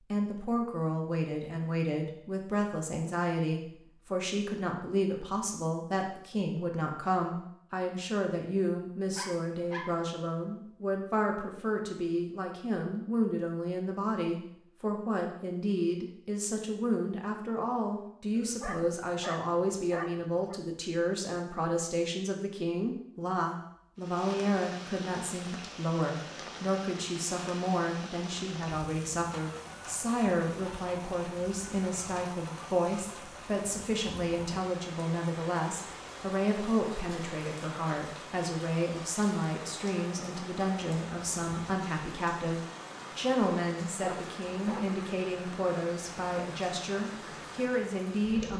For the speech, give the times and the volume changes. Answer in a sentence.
You can hear the speech from 0.1 to 48.5 s, at a steady volume.